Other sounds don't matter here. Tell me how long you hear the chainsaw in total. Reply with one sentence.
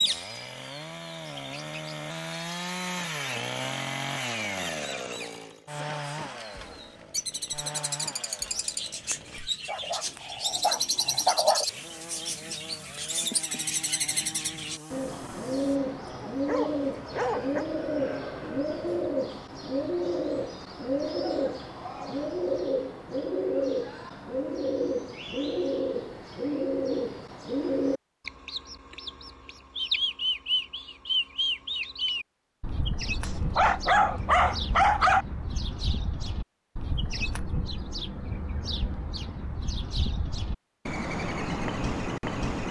The chainsaw can be heard for 16 seconds in total.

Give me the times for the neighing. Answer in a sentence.
You can't hear the neighing here.